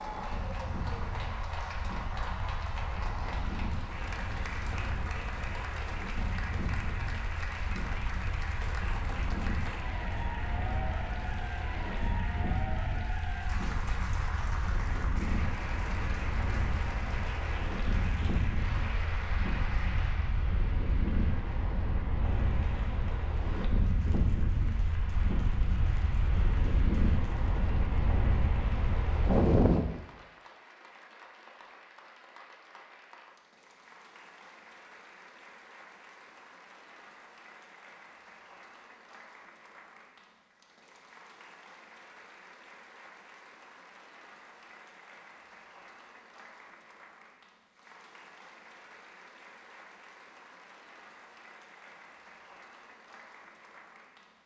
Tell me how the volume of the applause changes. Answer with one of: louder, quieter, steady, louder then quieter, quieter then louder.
quieter.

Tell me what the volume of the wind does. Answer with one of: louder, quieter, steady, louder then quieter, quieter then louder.
louder.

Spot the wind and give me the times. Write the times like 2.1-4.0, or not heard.
0.0-29.9.